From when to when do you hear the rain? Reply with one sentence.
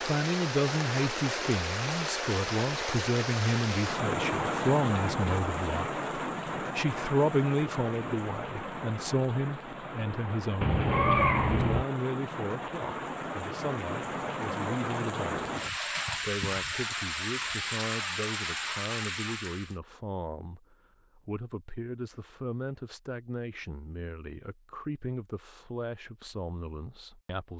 You can hear the rain from 0.0 to 19.8 s.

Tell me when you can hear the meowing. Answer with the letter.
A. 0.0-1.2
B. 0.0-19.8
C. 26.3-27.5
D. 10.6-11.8
D.